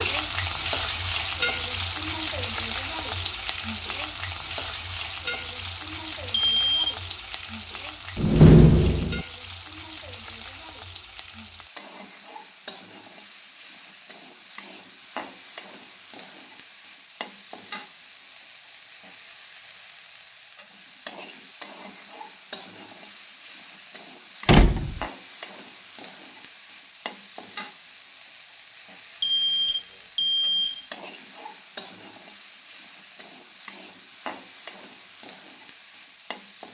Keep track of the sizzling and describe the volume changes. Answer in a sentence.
The volume of the sizzling goes down.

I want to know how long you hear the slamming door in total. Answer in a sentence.
You can hear the slamming door for 2 seconds altogether.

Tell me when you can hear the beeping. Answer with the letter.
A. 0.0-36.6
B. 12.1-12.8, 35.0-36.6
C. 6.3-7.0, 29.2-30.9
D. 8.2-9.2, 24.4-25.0
C.